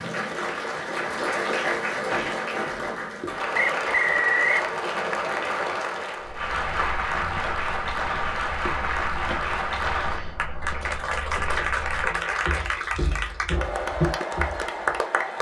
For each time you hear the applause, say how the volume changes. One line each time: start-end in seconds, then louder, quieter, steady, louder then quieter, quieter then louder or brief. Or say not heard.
0.0-15.3 steady.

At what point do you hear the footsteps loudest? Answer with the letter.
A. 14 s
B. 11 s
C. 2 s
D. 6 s
A.